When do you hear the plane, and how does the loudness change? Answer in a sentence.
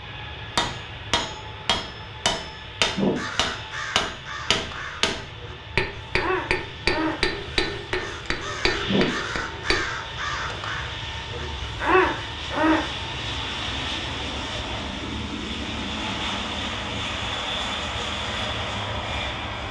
The plane can be heard from 0.0 to 19.6 s, getting louder.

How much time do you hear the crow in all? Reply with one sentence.
You can hear the crow for 10 seconds altogether.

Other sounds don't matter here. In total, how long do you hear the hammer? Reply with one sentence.
The hammer can be heard for 9 seconds in total.